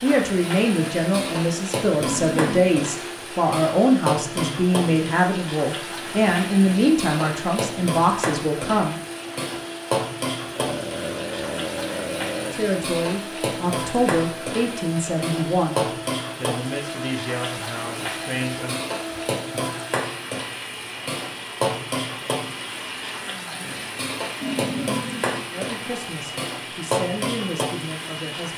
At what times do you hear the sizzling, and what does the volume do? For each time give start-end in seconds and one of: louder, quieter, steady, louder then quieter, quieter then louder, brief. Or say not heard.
0.0-28.5 steady.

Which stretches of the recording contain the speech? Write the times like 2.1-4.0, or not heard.
0.0-8.9, 12.5-18.8, 25.5-28.5.